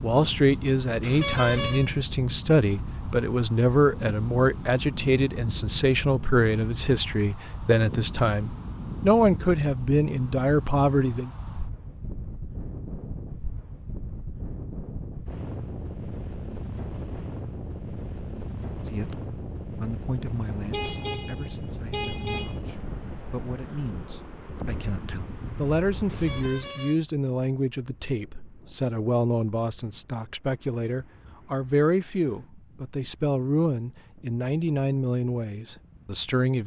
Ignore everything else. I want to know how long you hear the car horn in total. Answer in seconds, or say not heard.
4 s.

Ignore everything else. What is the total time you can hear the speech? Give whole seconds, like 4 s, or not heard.
29 s.